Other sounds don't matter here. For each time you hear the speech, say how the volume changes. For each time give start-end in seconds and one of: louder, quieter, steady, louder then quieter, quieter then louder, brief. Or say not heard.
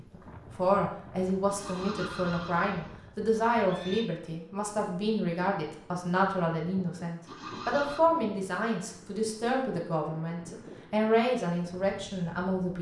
0.0-12.7 steady.